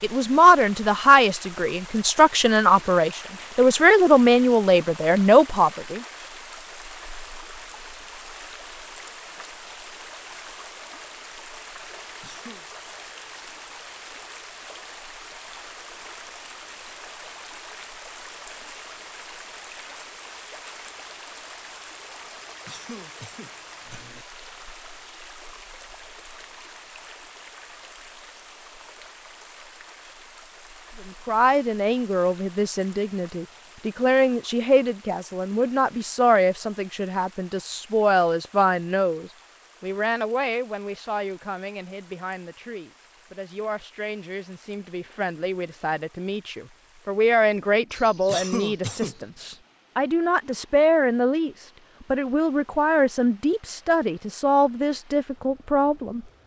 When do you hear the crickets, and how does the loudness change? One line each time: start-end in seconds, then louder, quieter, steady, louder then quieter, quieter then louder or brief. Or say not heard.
not heard.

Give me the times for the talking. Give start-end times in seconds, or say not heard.
0.0-6.0, 31.1-56.2.